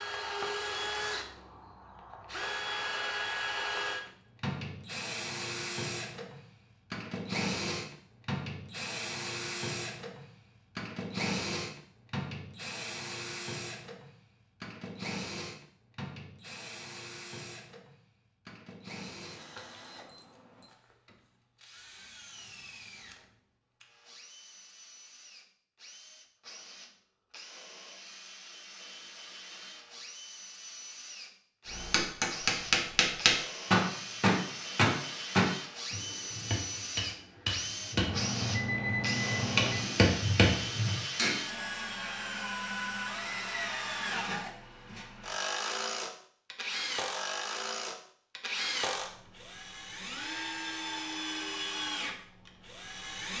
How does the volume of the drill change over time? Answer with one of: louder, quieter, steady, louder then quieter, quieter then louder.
quieter then louder.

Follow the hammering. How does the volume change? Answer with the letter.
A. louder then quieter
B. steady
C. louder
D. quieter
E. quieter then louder
E.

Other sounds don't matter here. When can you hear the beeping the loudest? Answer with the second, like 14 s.
39 s.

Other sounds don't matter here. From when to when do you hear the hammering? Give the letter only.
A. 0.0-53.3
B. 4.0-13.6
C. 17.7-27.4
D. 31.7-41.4
D.